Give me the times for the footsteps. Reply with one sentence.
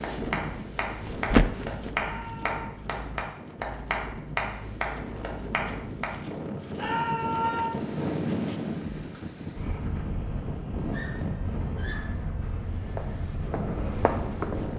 You can hear the footsteps from 0.1 to 1.9 s and from 12.4 to 14.7 s.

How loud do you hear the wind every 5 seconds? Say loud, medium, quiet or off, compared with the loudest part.
medium, loud, loud.